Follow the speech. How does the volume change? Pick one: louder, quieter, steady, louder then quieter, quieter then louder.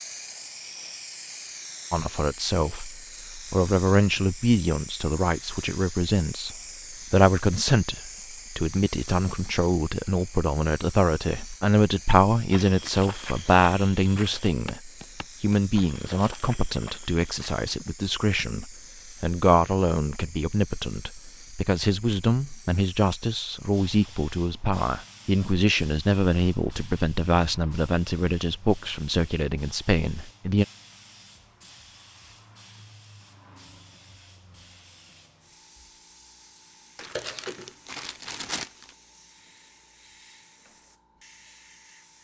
steady.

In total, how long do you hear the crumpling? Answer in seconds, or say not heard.
3 s.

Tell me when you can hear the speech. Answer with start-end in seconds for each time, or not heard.
1.9-30.6.